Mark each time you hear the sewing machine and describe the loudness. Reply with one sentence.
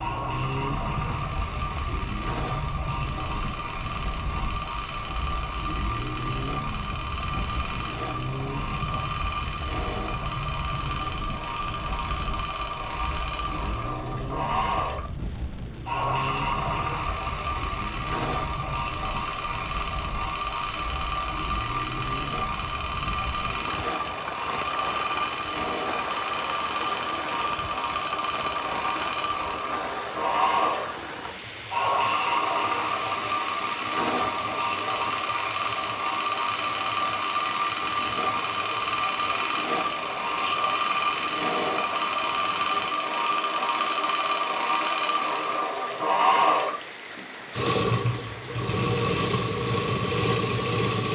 You can hear the sewing machine from 0.0 to 51.1 s, getting louder.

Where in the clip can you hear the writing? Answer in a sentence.
You can't hear the writing here.